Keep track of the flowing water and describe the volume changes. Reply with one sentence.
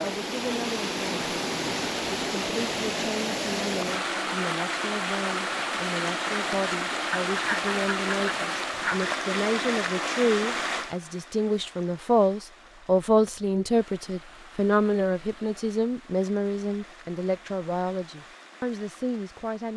The loudness of the flowing water goes down.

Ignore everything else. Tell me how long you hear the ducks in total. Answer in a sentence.
You can hear the ducks for 2 seconds altogether.